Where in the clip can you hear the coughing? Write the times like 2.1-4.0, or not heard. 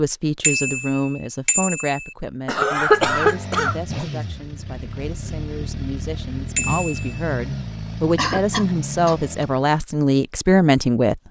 2.5-3.8, 8.2-9.6.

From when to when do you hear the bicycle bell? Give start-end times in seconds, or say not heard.
0.4-2.1, 6.5-7.2.